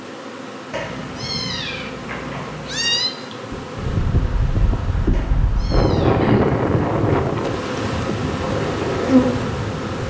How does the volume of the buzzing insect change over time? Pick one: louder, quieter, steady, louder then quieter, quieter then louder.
louder.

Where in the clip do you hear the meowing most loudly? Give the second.
3 s.